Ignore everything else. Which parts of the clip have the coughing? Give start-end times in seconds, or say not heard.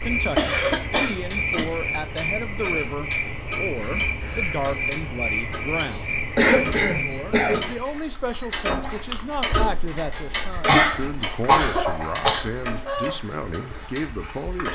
0.3-1.6, 6.3-7.6, 10.7-13.2.